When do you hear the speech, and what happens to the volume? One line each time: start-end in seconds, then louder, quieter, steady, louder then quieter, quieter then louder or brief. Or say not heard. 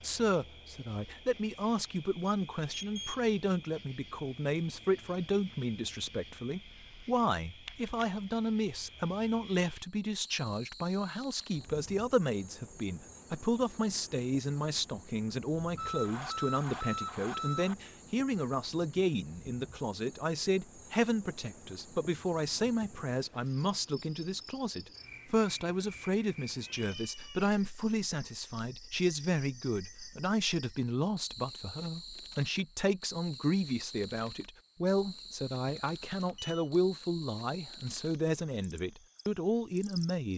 0.0-40.3 steady.